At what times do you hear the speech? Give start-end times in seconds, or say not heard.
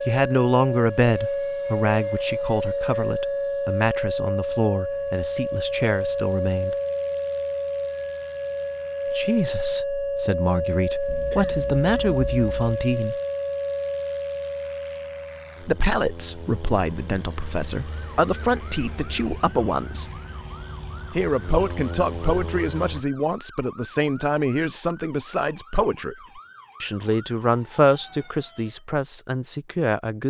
0.1-6.8, 9.1-13.2, 15.6-20.1, 21.1-30.2.